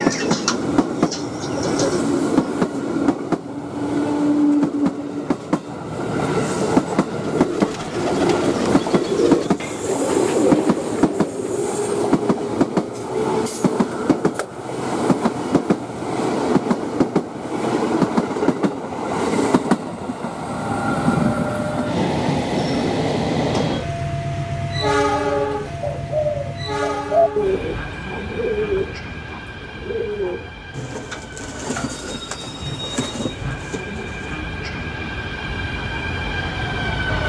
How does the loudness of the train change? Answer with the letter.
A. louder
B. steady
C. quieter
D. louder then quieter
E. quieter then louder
C.